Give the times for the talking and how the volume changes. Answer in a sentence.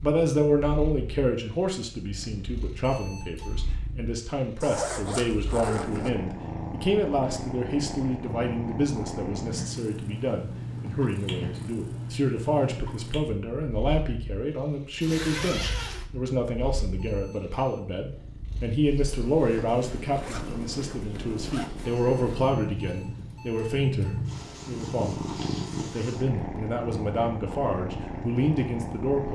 The talking can be heard from 0.0 to 29.3 s, at a steady volume.